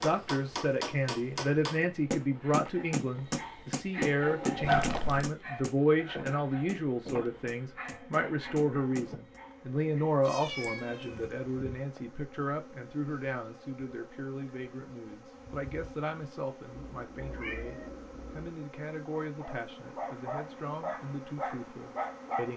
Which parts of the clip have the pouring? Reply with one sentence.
You can't hear the pouring here.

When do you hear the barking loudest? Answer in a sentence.
The loudest moment of the barking is at 5 seconds.